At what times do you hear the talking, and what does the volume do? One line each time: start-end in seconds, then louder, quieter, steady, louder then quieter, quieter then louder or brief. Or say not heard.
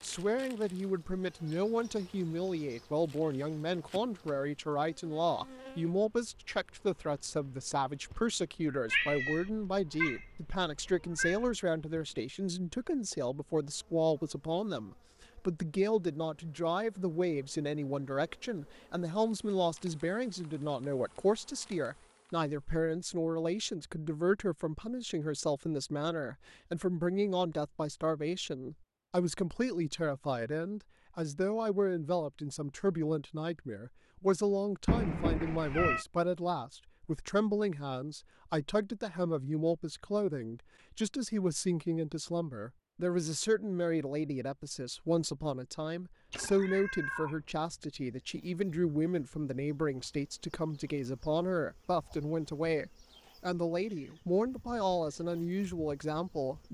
0.0-56.6 steady.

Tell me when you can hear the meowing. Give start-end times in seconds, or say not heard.
8.8-11.6, 34.9-36.0, 46.3-47.4.